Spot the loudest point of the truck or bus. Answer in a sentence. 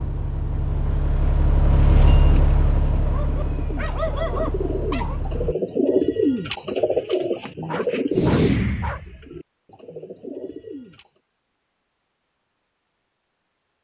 The loudest moment of the truck or bus is at 2 seconds.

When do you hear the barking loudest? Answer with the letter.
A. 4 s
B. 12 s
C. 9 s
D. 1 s
A.